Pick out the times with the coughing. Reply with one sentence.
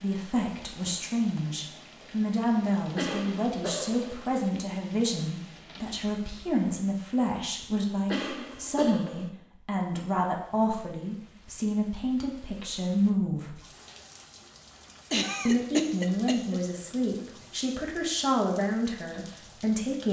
The coughing can be heard from 3.0 to 4.2 s, from 8.1 to 9.3 s and from 15.1 to 16.6 s.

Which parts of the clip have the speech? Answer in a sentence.
The speech can be heard from 0.0 to 13.6 s and from 15.4 to 20.0 s.